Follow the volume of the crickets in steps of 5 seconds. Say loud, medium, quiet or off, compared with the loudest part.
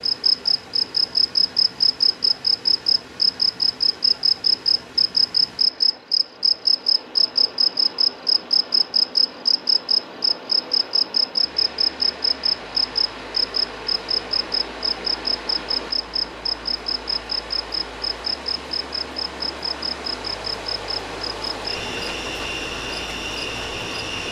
loud, loud, loud, medium, quiet.